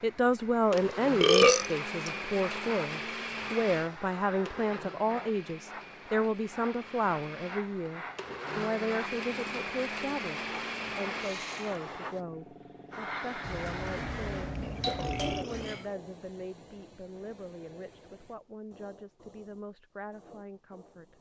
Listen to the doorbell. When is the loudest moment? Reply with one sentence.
The volume of the doorbell peaks at 15 seconds.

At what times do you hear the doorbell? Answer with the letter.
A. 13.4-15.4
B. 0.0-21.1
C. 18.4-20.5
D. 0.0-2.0
A.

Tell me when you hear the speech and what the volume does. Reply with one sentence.
The speech can be heard from 0.0 to 21.1 s, getting quieter.